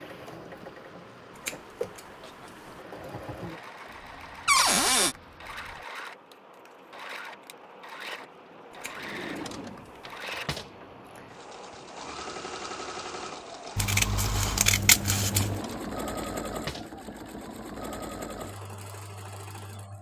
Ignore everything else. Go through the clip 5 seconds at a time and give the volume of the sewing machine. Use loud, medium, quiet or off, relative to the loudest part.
medium, medium, loud, loud.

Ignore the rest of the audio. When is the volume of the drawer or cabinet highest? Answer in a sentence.
The loudest moment of the drawer or cabinet is at 5 seconds.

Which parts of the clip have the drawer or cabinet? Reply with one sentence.
The drawer or cabinet can be heard from 4.5 to 5.2 s, from 8.9 to 10.7 s and from 15.4 to 16.9 s.